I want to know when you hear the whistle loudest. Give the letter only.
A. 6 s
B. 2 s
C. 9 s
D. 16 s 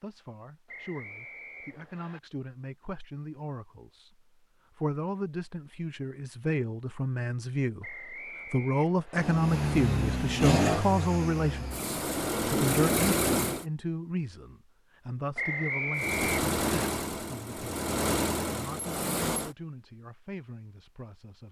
D.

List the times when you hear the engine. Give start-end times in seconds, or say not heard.
9.2-13.7, 15.9-19.5.